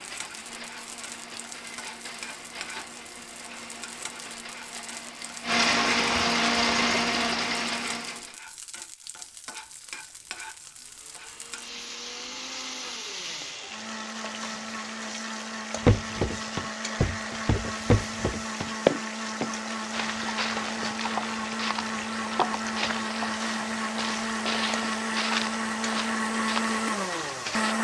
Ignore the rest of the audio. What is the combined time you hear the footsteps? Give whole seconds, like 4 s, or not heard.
12 s.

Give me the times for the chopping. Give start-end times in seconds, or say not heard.
not heard.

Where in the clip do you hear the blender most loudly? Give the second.
6 s.